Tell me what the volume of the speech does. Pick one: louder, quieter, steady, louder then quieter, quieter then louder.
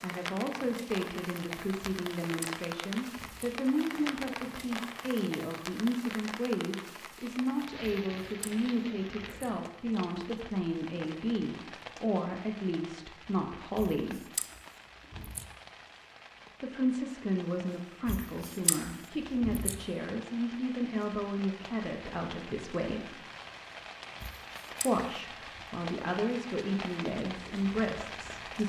steady.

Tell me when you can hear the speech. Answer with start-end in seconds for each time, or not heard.
0.0-14.2, 16.6-23.1, 24.8-28.6.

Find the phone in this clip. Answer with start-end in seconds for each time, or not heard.
not heard.